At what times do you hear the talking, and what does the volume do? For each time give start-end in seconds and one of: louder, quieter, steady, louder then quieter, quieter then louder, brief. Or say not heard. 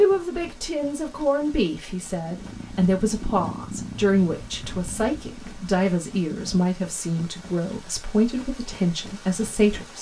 0.0-9.9 steady.